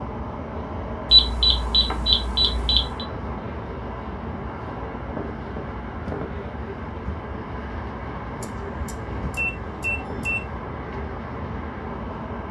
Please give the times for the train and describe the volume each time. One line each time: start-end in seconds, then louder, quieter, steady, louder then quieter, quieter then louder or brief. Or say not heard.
0.0-12.4 steady.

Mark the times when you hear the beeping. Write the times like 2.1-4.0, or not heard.
1.1-3.0, 8.4-10.5.